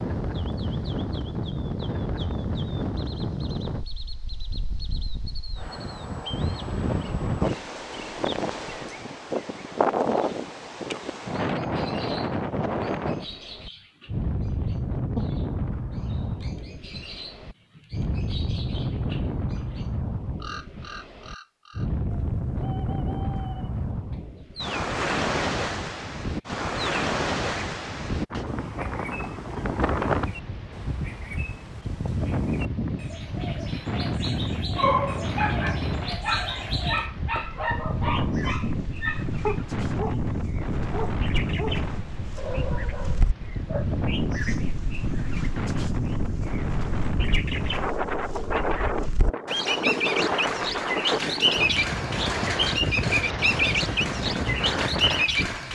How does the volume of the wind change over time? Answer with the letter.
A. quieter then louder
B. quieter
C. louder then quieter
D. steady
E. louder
D.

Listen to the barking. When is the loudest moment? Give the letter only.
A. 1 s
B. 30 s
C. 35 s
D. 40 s
C.